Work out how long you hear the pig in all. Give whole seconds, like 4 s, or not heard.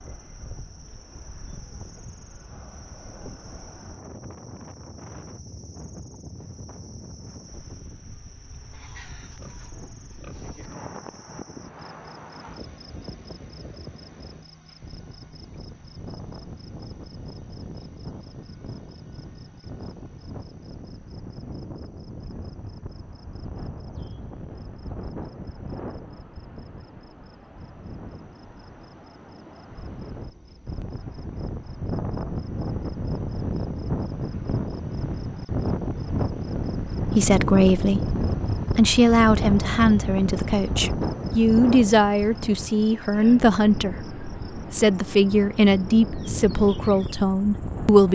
2 s.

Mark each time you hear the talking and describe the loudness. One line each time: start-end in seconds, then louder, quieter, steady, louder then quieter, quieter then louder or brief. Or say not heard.
37.0-38.1 brief
38.8-48.0 steady.